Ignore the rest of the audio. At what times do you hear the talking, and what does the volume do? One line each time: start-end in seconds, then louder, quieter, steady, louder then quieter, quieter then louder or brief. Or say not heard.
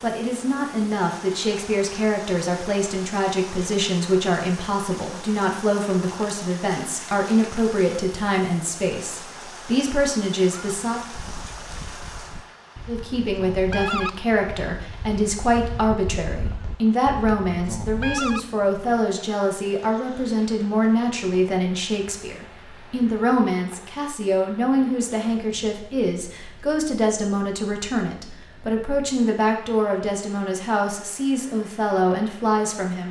0.0-11.0 steady
12.8-33.0 steady.